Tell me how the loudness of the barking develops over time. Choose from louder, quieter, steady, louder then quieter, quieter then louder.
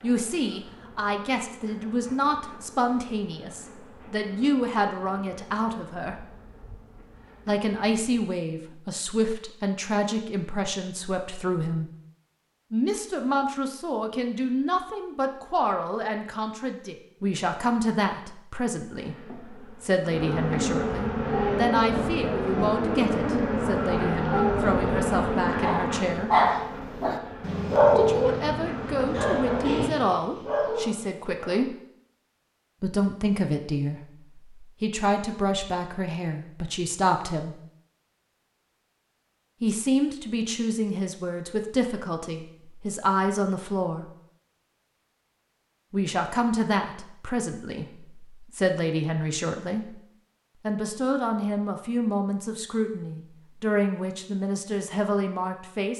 louder then quieter.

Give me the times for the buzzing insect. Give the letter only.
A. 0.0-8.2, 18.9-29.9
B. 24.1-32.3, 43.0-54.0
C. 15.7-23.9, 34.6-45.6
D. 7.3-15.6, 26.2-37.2
A.